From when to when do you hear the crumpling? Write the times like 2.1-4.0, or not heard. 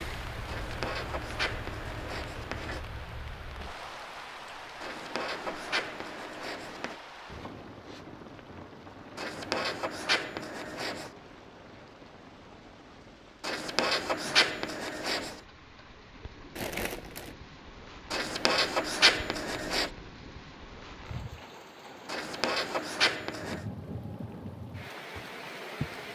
16.6-17.4.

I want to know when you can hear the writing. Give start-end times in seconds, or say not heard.
0.5-2.8, 4.8-7.0, 9.2-11.1, 13.4-15.4, 18.1-19.9, 22.1-23.6.